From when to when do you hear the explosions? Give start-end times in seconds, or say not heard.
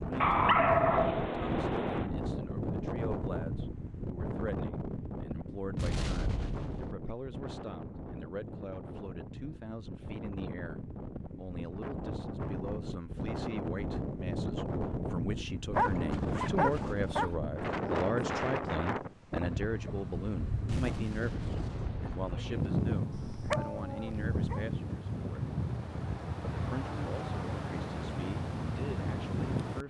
5.8-7.0, 20.6-22.4.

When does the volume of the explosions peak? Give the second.
6 s.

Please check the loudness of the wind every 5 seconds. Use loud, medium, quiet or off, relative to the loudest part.
loud, medium, loud, loud, loud, loud.